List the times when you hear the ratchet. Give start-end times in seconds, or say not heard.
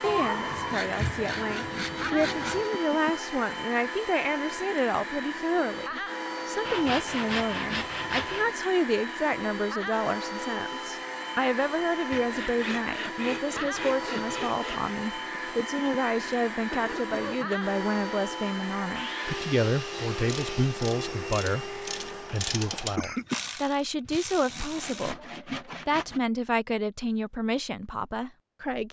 20.1-25.1.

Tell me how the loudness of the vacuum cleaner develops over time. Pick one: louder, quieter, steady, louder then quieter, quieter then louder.
steady.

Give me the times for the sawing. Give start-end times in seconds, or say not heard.
0.0-2.7, 6.7-8.6, 12.1-14.9, 18.9-20.8, 24.1-26.2.